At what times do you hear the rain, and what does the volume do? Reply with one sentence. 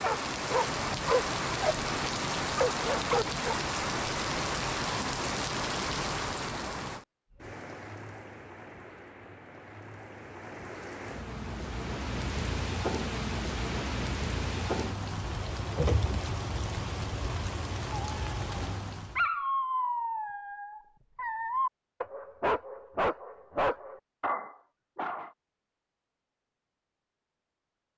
The rain can be heard from 0.0 to 19.2 s, getting quieter then louder.